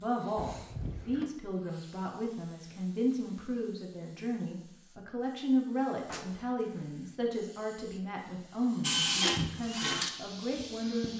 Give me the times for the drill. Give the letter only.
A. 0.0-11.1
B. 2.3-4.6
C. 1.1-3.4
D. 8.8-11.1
D.